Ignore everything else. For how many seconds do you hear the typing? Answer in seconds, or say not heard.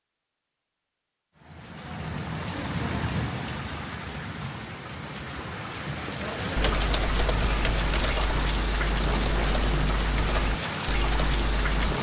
5 s.